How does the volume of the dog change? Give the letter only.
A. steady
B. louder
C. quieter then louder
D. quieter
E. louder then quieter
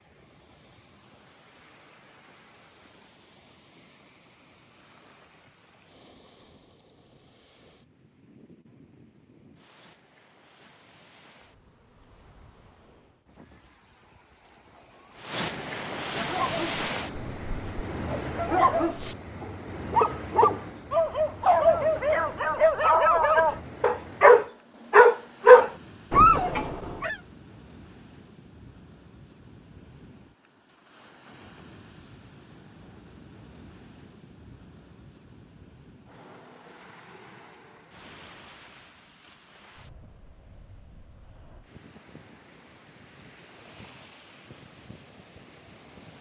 B.